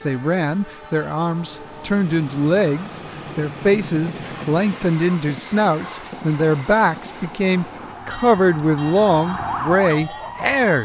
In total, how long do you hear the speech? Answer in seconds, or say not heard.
11 s.